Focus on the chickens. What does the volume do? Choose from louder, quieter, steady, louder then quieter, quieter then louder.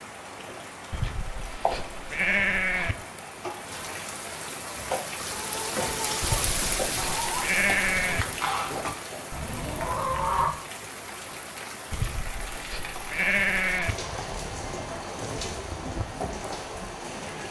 louder.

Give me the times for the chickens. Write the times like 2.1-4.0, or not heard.
4.7-10.6.